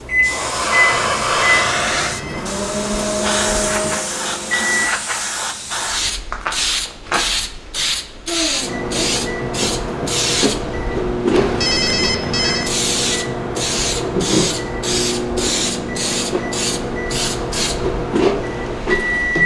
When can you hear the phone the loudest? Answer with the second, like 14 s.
12 s.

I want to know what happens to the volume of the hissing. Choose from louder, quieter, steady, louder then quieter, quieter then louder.
steady.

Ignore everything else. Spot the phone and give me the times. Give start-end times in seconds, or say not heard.
0.8-2.5, 11.3-12.8.